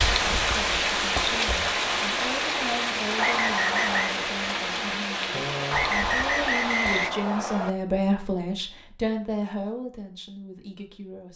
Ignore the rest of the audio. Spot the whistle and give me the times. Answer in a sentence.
The whistle can be heard from 3.1 to 4.2 s and from 5.7 to 7.7 s.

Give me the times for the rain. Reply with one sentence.
You can hear the rain from 0.0 to 7.1 s.